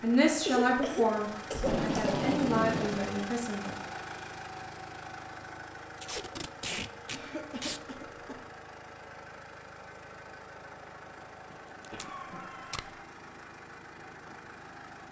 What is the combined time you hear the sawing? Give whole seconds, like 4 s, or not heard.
not heard.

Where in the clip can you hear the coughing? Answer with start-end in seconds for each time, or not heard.
0.5-2.2, 7.1-8.3, 11.9-12.8.